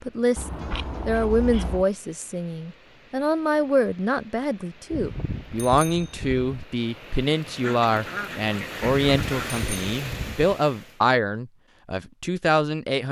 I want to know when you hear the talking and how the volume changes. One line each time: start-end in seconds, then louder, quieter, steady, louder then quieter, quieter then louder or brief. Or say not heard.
0.0-13.0 steady.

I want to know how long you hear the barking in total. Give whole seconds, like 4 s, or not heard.
not heard.